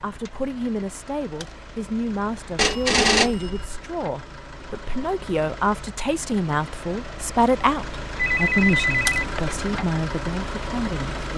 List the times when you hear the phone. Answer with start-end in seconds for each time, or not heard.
2.5-3.8, 8.2-9.6.